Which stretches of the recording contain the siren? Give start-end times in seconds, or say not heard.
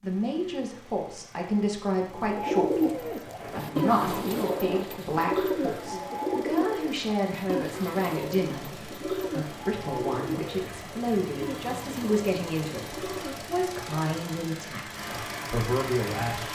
not heard.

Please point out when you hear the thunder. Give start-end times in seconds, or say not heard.
3.4-4.8.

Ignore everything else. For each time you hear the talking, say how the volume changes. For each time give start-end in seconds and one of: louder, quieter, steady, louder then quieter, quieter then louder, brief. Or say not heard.
0.0-16.5 steady.